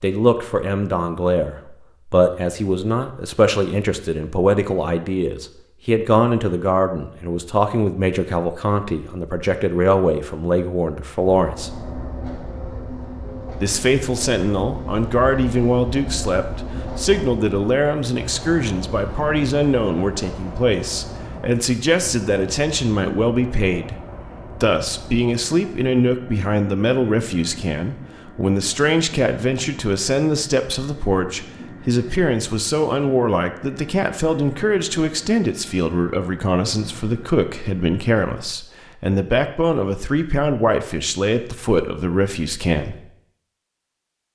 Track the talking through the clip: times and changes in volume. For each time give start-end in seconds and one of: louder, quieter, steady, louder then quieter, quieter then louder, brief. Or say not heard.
0.0-11.8 steady
13.6-43.0 steady.